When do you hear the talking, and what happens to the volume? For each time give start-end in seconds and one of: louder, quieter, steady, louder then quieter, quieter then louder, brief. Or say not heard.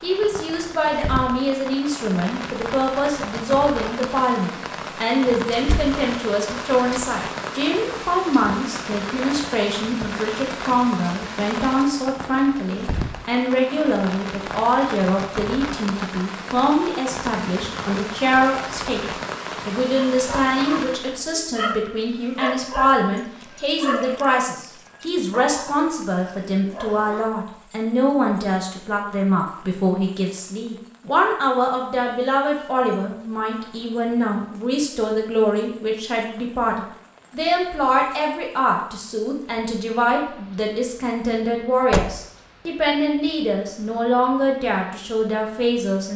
0.0-46.1 steady.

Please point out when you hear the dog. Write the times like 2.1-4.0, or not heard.
20.1-27.4.